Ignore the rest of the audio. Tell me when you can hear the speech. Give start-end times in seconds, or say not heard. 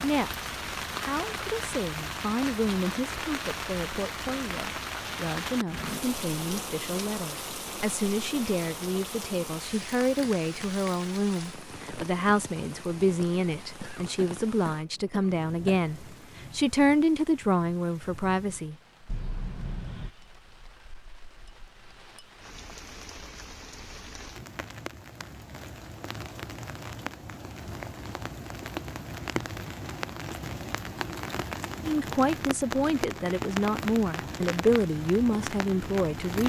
0.0-18.8, 31.8-36.4.